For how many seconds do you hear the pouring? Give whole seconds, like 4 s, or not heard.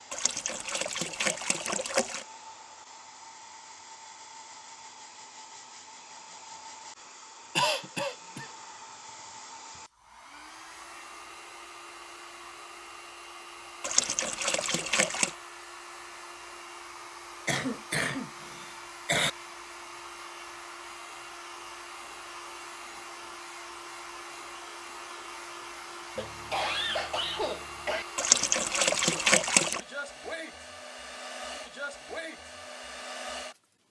5 s.